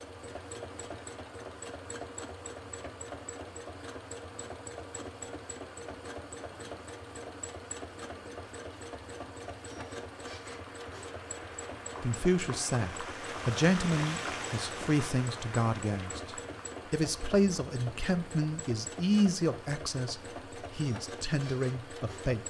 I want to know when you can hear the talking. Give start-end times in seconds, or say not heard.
12.0-22.4.